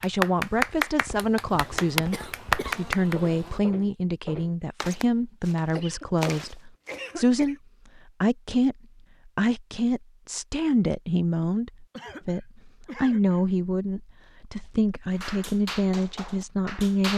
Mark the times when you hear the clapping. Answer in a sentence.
The clapping can be heard from 0.0 to 3.1 s and from 15.2 to 17.1 s.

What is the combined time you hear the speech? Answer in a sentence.
You can hear the speech for 17 seconds altogether.